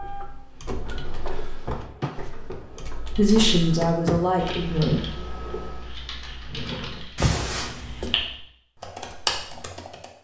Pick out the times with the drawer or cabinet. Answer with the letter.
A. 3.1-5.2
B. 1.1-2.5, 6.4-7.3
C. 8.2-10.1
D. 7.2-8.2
B.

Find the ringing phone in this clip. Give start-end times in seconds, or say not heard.
7.2-8.2.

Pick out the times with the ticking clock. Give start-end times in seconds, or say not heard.
not heard.